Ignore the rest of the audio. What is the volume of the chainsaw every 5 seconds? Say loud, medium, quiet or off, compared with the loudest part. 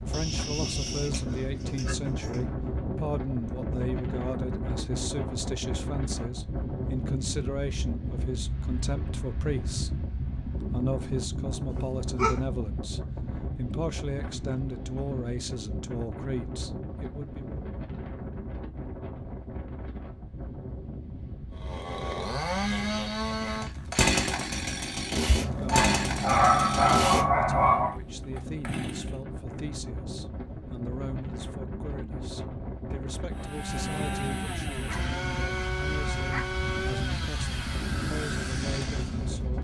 off, off, off, off, loud, loud, medium, medium.